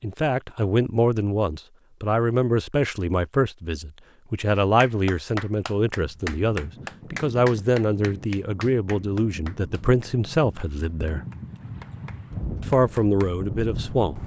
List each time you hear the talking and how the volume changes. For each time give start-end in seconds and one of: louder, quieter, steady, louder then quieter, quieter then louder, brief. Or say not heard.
0.0-11.2 steady
12.6-14.2 brief.